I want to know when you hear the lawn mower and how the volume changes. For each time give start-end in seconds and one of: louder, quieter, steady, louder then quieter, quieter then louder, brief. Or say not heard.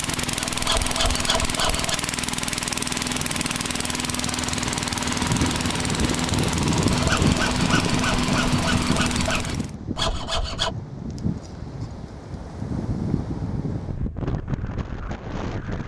0.0-9.8 steady.